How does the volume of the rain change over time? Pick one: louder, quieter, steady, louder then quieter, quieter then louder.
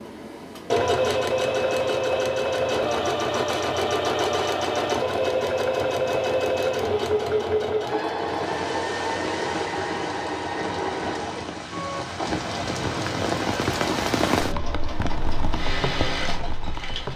louder then quieter.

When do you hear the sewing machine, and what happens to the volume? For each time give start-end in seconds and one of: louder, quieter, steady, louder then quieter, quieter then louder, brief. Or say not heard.
0.0-17.1 quieter.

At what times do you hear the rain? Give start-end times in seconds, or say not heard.
8.3-17.1.